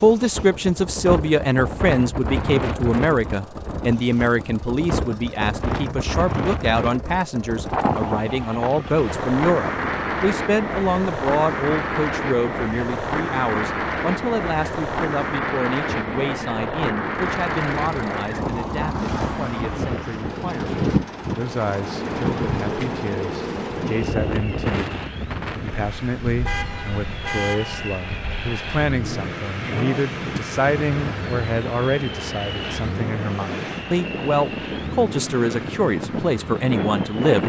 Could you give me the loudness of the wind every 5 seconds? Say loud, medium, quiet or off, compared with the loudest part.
loud, loud, loud, loud, loud, medium, medium, loud.